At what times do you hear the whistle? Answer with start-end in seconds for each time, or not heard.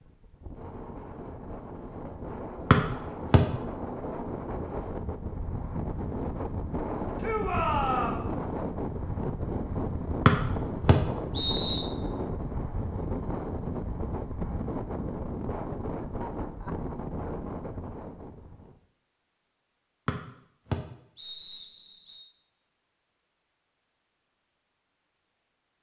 2.7-3.4, 10.2-11.8, 20.1-22.2.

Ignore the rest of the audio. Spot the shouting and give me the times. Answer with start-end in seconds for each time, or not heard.
7.2-8.2.